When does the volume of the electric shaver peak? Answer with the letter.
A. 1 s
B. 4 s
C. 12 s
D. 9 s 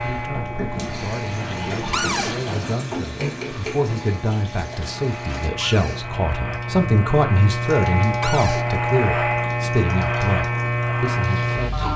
D.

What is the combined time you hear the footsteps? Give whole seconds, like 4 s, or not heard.
not heard.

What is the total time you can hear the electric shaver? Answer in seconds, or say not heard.
12 s.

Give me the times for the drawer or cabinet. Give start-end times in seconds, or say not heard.
1.9-2.4, 5.6-6.0, 8.2-8.7.